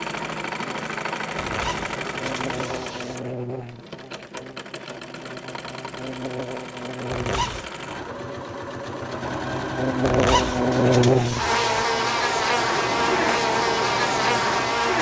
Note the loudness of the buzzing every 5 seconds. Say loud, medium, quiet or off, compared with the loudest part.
quiet, quiet, loud.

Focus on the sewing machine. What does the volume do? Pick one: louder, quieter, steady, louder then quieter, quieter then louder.
quieter then louder.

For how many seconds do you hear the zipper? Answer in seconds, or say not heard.
4 s.